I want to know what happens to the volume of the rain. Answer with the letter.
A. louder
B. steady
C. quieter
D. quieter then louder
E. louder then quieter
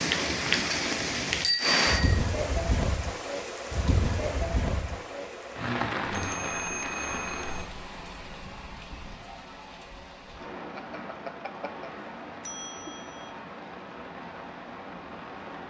C.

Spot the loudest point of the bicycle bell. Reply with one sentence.
The volume of the bicycle bell peaks at 2 seconds.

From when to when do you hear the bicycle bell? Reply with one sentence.
You can hear the bicycle bell from 1.4 to 2.2 s, from 6.1 to 7.7 s and from 10.8 to 13.3 s.